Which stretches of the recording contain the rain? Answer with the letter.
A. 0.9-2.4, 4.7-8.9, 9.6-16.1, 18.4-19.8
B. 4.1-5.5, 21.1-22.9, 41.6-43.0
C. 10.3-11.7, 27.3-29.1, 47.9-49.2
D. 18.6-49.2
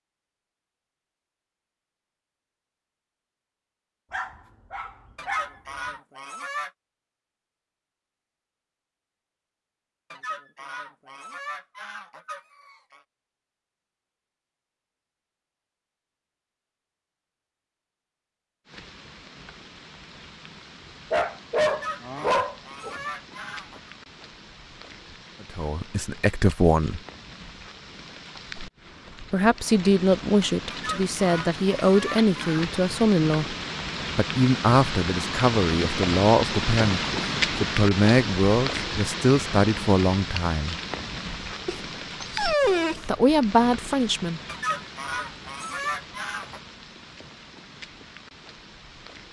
D.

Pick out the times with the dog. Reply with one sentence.
The dog can be heard from 4.1 to 5.5 s, from 21.1 to 22.9 s and from 41.6 to 43.0 s.